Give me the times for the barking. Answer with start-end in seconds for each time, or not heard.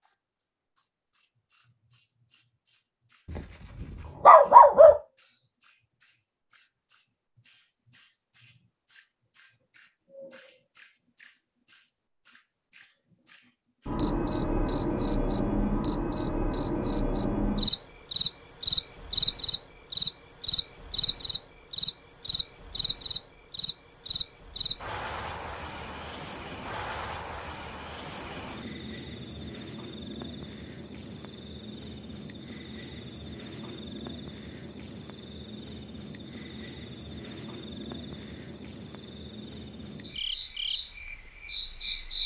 3.4-5.0.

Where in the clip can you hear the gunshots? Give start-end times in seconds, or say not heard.
not heard.